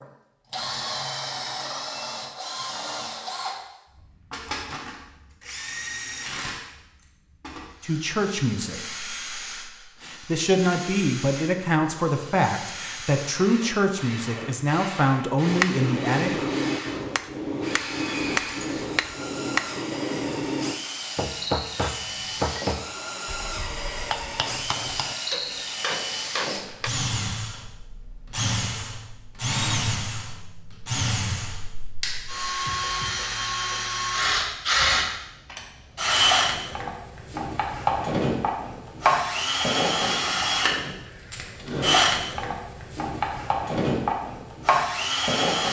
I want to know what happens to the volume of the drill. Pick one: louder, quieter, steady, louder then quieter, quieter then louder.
louder.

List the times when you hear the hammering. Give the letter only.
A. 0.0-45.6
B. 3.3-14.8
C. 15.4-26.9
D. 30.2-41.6
C.